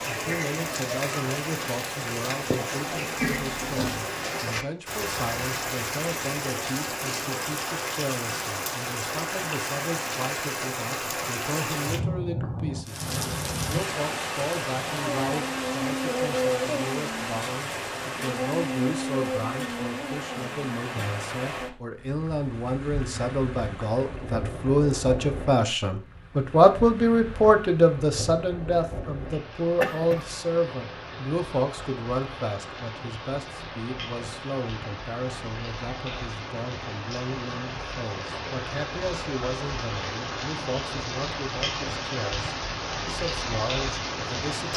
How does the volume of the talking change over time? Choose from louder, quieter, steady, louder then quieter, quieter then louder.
louder then quieter.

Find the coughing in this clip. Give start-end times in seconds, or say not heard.
3.2-4.1, 29.6-30.2.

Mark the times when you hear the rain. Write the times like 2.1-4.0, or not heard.
0.0-44.7.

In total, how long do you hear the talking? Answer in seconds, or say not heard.
45 s.